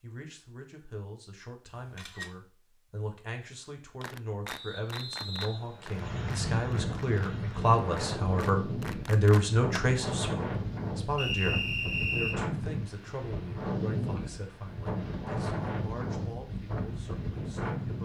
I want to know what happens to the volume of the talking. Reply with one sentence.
The volume of the talking goes up, then down.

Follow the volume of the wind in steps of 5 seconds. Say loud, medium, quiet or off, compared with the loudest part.
off, loud, loud, loud.